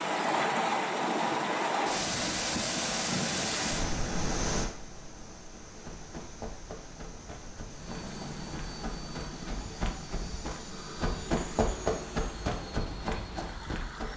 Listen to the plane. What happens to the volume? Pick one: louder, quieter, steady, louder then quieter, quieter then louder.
quieter.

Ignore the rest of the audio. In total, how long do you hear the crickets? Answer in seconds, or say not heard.
not heard.